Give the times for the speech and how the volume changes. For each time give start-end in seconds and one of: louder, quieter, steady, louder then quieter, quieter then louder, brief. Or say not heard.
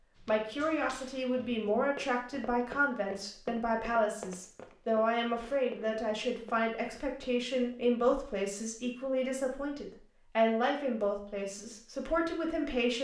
0.2-12.9 steady.